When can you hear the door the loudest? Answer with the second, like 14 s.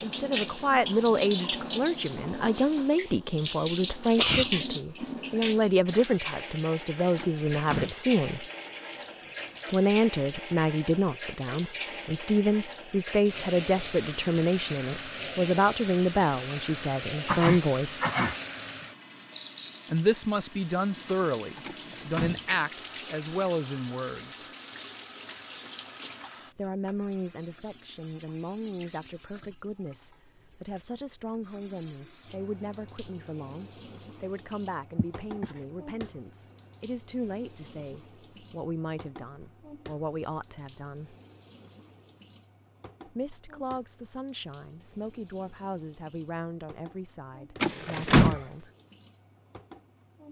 48 s.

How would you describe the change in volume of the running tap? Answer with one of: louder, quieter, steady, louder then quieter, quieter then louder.
quieter.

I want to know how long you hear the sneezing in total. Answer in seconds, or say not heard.
3 s.